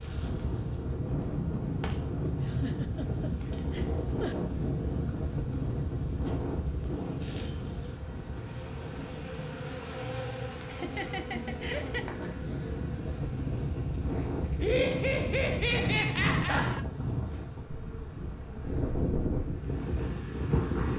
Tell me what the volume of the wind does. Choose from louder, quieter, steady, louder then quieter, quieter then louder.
quieter then louder.